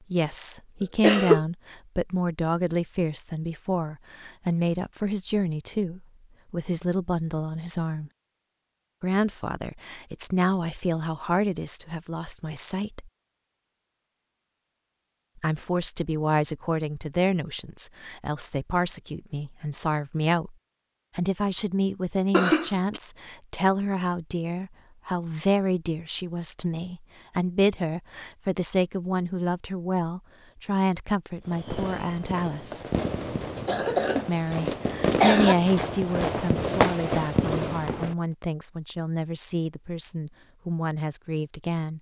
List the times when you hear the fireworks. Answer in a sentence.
The fireworks can be heard from 31.4 to 38.1 s.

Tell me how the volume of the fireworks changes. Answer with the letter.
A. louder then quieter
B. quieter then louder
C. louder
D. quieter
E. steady
C.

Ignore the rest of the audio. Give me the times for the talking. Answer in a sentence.
You can hear the talking from 0.1 to 8.1 s, from 9.0 to 13.1 s, from 15.3 to 20.6 s, from 21.1 to 33.0 s and from 34.2 to 41.9 s.